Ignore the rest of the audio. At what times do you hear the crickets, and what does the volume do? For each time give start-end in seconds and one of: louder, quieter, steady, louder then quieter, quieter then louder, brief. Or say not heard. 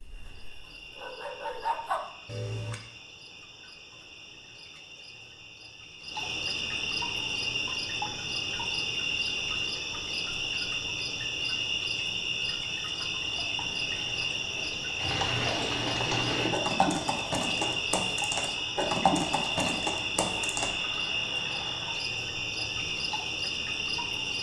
0.0-24.3 louder.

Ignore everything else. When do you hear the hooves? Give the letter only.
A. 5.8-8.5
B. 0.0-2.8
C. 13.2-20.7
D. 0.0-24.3
C.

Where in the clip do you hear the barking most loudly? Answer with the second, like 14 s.
2 s.